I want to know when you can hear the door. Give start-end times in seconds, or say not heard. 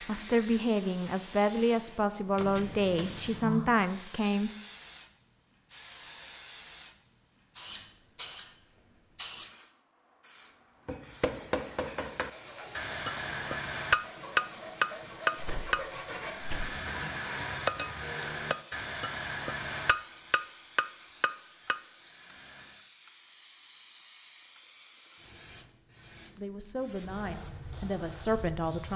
2.4-3.7, 15.3-16.6.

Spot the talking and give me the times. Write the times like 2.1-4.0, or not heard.
0.1-4.5, 26.4-28.9.